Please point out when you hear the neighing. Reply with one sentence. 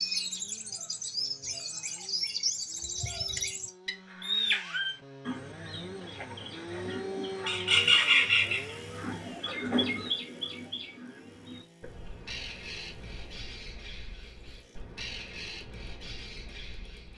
The neighing can't be heard in this clip.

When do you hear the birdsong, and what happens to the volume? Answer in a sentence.
The birdsong can be heard from 0.0 to 17.1 s, getting louder then quieter.